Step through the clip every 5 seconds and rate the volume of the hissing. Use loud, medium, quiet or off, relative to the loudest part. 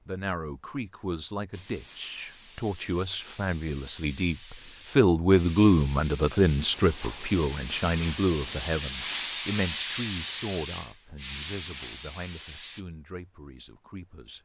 quiet, loud, loud.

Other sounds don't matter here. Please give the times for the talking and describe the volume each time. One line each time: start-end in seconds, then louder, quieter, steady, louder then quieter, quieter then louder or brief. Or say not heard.
0.1-14.4 louder then quieter.